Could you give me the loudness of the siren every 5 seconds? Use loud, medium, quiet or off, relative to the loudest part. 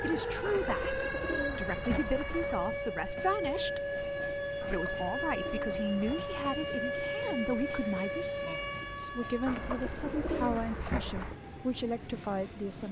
loud, loud, quiet.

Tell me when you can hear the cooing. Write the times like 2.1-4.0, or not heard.
0.5-2.7, 4.6-6.3, 9.4-11.3.